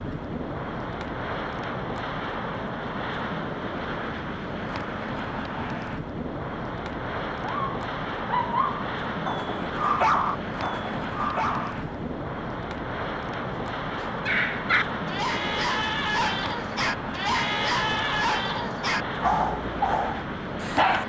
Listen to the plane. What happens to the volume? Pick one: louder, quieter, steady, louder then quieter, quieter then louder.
steady.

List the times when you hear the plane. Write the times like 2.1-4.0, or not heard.
0.0-21.0.